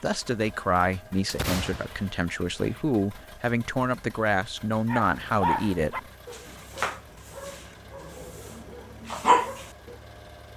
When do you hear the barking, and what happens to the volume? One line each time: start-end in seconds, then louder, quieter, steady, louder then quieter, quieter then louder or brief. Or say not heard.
4.8-9.9 quieter then louder.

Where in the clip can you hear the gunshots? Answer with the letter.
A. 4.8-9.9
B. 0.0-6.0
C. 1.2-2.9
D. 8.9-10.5
C.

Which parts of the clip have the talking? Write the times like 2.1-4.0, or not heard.
0.0-6.0.